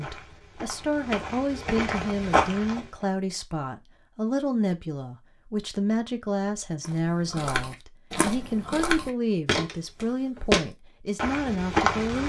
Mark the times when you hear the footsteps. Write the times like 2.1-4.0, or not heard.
0.0-2.9, 6.8-12.2.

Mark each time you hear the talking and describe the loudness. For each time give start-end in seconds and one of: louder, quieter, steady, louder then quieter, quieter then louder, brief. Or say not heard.
0.0-12.2 steady.